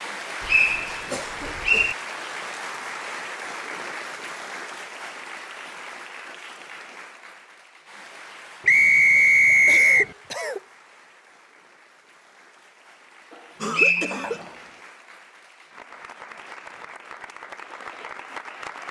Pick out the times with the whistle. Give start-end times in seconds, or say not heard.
0.5-1.9, 8.7-10.1, 13.7-14.5.